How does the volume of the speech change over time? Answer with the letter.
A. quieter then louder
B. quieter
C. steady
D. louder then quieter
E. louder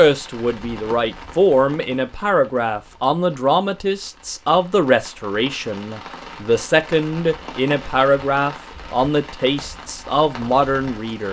C.